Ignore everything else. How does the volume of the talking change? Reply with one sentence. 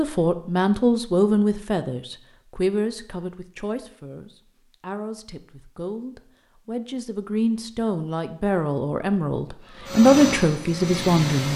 The volume of the talking goes down, then up.